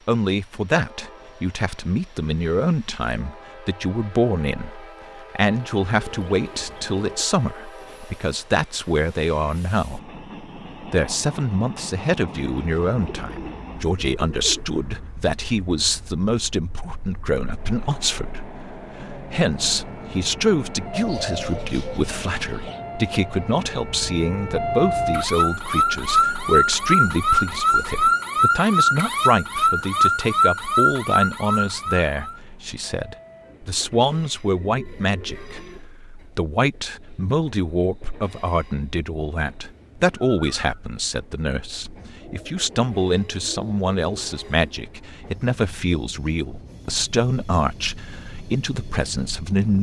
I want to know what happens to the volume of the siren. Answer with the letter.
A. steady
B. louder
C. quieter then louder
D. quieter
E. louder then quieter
B.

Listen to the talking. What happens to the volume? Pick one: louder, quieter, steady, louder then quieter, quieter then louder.
steady.